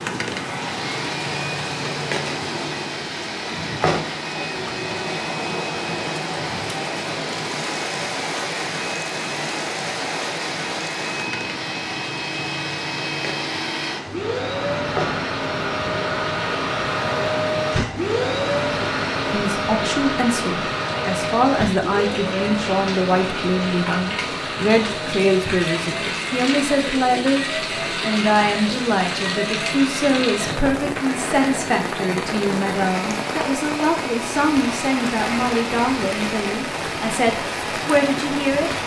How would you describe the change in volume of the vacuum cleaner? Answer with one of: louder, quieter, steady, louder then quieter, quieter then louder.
louder then quieter.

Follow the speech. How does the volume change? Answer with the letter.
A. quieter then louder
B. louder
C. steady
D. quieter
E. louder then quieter
C.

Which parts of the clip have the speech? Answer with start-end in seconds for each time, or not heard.
19.3-38.8.